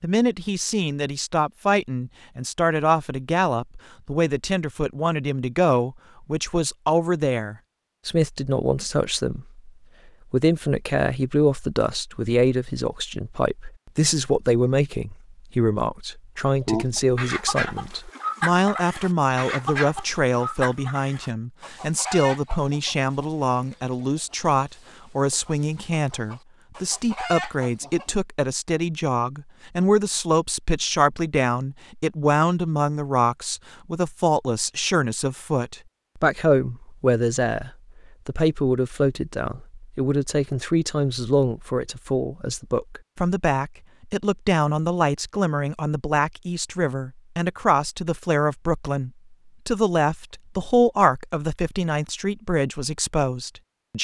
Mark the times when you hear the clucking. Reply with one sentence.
You can hear the clucking from 16.6 to 28.1 s.